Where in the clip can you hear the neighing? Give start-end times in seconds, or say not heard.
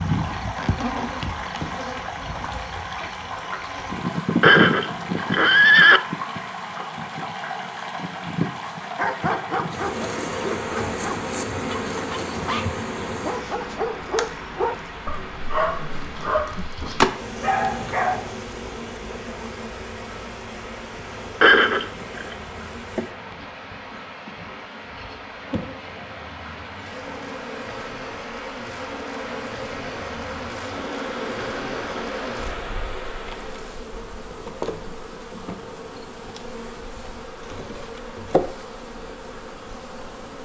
4.4-6.0, 21.4-22.4.